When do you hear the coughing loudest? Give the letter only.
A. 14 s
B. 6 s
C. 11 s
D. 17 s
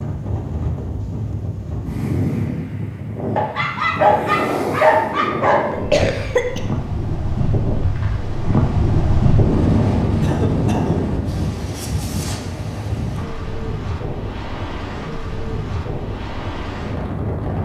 B.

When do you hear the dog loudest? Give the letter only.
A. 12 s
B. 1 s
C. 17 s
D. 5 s
D.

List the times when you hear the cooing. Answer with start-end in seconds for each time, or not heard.
not heard.